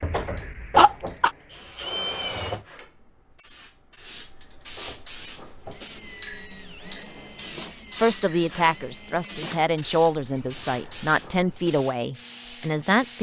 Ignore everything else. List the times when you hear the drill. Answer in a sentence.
You can hear the drill from 0.0 to 2.6 s and from 4.8 to 11.6 s.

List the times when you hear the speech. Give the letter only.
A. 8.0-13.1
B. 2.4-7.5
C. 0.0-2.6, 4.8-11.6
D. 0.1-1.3
A.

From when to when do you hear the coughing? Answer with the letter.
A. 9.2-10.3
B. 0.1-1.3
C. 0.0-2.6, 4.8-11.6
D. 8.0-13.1
B.